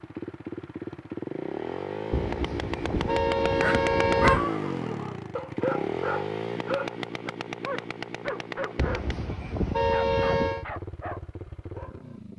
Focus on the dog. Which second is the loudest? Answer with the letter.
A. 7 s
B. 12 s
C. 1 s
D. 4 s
D.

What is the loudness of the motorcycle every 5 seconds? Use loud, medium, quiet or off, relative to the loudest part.
loud, loud, medium.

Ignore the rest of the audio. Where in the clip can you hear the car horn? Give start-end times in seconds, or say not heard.
2.1-4.5, 8.8-10.7.